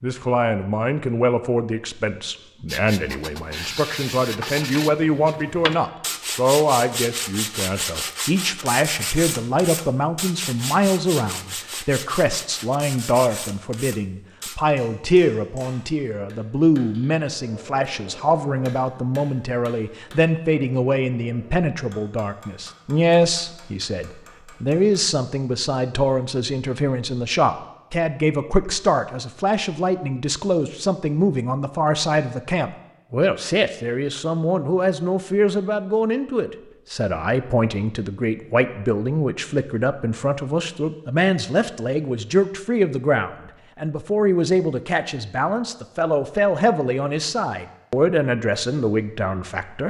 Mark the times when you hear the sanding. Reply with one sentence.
The sanding can be heard from 2.6 to 14.6 s.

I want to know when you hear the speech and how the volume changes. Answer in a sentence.
The speech can be heard from 0.0 to 49.8 s, at a steady volume.